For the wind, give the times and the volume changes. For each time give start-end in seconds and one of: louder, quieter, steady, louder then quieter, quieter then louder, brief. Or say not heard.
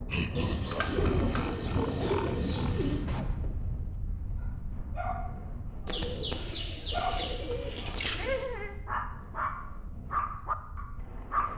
0.0-11.5 quieter.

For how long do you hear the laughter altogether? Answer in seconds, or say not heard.
3 s.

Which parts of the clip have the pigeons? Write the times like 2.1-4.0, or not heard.
0.3-3.0, 5.8-8.5.